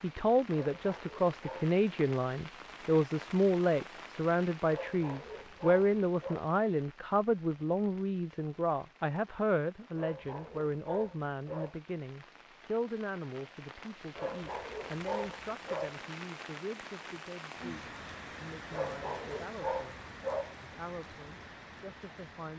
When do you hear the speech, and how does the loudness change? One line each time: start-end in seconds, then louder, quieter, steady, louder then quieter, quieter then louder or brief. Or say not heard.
0.0-20.0 quieter
20.6-22.5 brief.